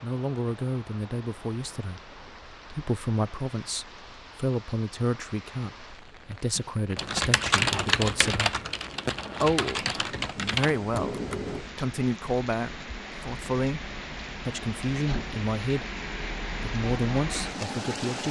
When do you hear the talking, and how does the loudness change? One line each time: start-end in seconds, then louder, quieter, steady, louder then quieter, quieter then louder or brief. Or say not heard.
0.0-8.6 steady
9.4-15.8 steady
16.6-18.2 brief.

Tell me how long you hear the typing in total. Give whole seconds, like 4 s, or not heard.
5 s.